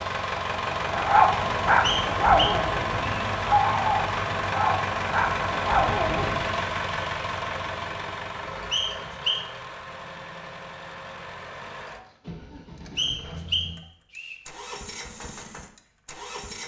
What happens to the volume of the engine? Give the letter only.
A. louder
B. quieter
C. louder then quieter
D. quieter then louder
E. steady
B.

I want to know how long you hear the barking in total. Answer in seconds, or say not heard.
6 s.